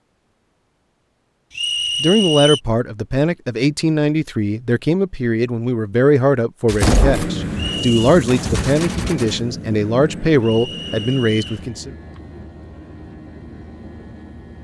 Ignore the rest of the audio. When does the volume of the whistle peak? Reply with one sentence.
The volume of the whistle peaks at 2 seconds.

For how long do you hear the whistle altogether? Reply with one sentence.
The whistle can be heard for 3 seconds in total.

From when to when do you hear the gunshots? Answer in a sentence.
You can hear the gunshots from 6.7 to 9.3 s.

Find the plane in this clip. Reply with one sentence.
The plane can be heard from 6.8 to 14.6 s.